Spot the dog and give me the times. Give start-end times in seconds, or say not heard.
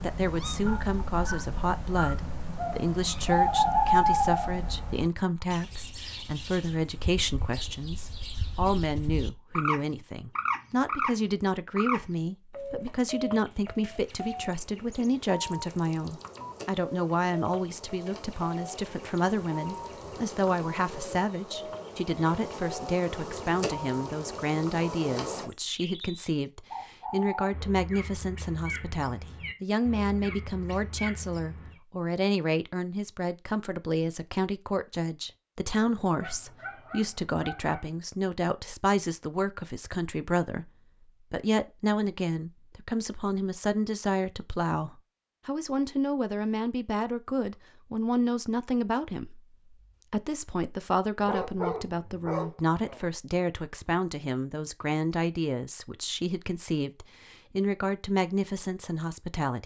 0.7-2.1, 36.1-37.9, 51.2-53.0.